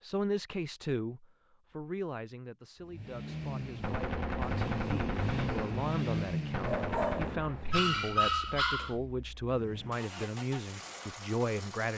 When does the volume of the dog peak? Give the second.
8 s.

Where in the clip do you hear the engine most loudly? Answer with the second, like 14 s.
6 s.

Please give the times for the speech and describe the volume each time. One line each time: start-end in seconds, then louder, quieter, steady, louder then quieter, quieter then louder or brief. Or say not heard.
0.0-11.9 quieter then louder.